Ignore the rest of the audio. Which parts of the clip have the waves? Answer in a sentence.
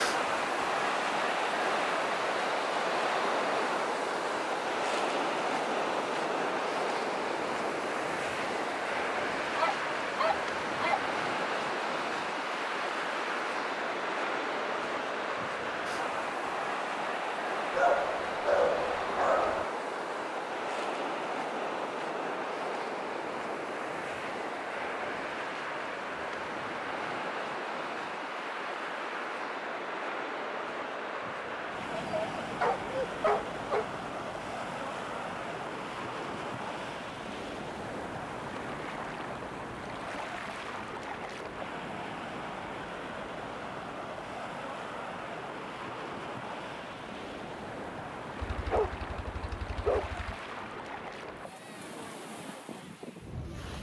The waves can be heard from 0.0 to 53.7 s.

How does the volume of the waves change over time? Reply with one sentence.
The loudness of the waves goes down.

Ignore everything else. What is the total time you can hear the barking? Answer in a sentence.
You can hear the barking for 7 seconds altogether.